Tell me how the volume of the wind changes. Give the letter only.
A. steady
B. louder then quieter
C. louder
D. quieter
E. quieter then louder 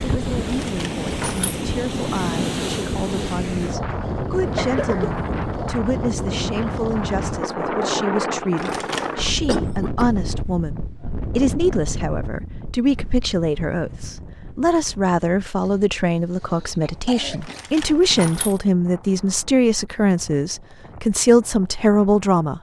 D.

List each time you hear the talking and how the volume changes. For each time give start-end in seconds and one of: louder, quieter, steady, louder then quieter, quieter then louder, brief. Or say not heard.
0.0-22.5 louder.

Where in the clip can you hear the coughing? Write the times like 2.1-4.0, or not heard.
4.3-5.2, 9.4-10.1, 16.4-17.6.